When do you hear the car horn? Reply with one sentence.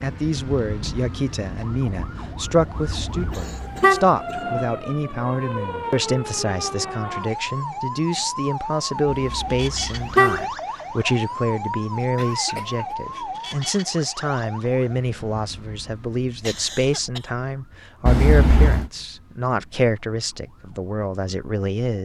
You can hear the car horn from 2.8 to 4.0 s, from 9.1 to 10.4 s and from 18.1 to 18.9 s.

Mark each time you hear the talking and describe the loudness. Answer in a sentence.
The talking can be heard from 0.0 to 21.9 s, at a steady volume.